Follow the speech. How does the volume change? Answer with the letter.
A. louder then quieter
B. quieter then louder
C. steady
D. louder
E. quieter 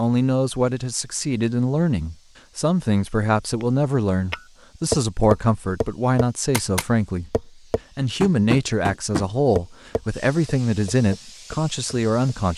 C.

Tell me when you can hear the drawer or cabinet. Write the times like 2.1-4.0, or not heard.
not heard.